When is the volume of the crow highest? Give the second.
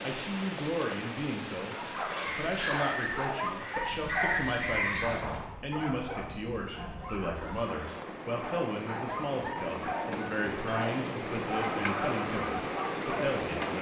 4 s.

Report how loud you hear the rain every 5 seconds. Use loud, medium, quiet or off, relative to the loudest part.
medium, medium, loud.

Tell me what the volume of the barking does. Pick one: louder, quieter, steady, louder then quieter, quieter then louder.
quieter then louder.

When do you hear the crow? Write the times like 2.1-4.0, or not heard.
2.1-5.5.